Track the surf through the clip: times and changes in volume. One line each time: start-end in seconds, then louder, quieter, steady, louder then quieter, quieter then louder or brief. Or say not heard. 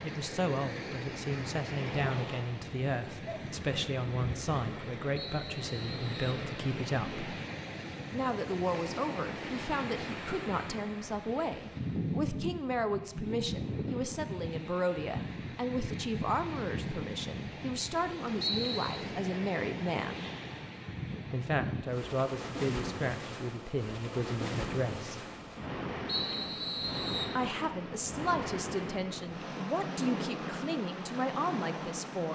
0.0-32.3 steady.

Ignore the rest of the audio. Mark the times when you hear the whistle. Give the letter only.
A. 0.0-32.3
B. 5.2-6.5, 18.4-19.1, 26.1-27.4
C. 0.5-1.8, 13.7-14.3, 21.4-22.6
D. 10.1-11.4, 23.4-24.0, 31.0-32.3
B.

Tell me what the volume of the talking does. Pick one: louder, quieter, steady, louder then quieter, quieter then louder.
steady.